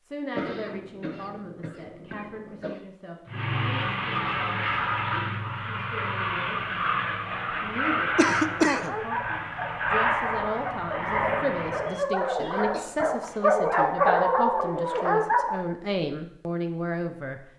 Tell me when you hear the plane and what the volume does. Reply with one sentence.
The plane can be heard from 3.2 to 12.0 s, at a steady volume.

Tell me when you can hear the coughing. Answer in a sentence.
You can hear the coughing from 0.3 to 2.8 s, from 8.2 to 8.9 s and from 12.3 to 13.5 s.